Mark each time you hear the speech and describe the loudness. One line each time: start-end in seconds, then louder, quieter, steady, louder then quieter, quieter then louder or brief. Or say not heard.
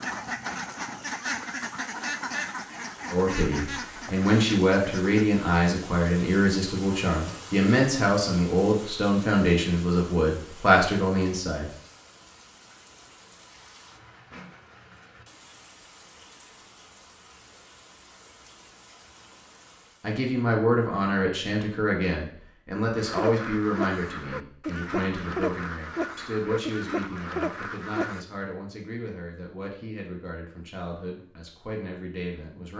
3.1-11.7 steady
20.0-32.7 quieter.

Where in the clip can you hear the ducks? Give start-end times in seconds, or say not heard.
0.0-5.2, 22.9-28.2.